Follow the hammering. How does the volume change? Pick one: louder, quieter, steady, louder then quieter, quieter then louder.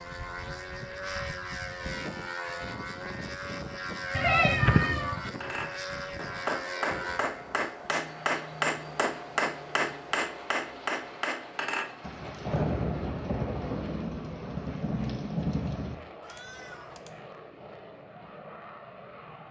steady.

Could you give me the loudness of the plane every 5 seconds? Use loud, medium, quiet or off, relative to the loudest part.
loud, loud, medium, medium.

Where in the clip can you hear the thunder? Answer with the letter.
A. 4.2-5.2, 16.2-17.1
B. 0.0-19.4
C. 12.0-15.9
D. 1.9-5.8
C.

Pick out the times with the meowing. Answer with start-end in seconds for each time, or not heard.
4.2-5.2, 16.2-17.1.